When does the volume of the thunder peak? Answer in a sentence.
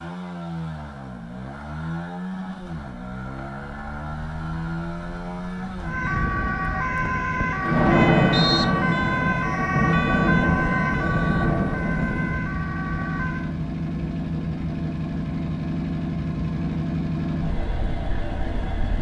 The loudest moment of the thunder is at 8 seconds.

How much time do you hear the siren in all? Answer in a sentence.
You can hear the siren for 8 seconds altogether.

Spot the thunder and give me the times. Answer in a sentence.
The thunder can be heard from 7.6 to 12.4 s.